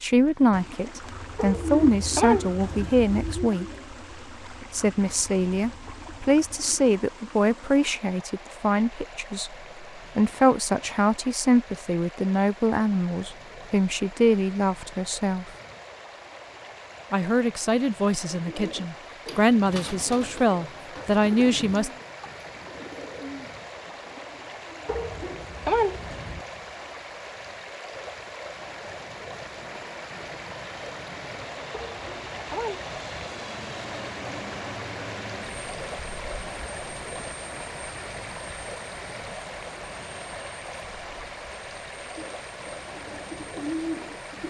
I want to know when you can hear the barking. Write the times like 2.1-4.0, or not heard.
1.4-3.0, 24.9-26.4, 31.7-33.3.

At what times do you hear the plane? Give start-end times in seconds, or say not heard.
29.6-44.4.